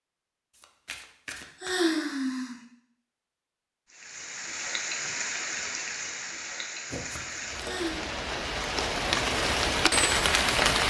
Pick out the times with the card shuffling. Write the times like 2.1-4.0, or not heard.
0.6-1.7, 6.9-7.9.